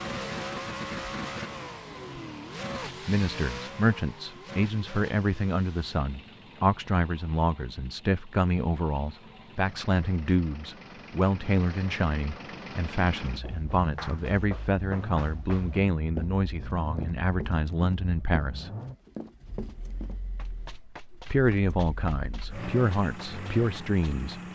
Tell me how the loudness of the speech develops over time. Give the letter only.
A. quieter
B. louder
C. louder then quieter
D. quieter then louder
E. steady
E.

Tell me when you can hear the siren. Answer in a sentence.
The siren can't be heard in this clip.